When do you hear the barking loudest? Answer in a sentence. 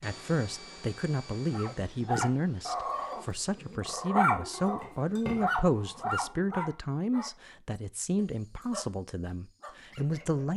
The volume of the barking peaks at 4 seconds.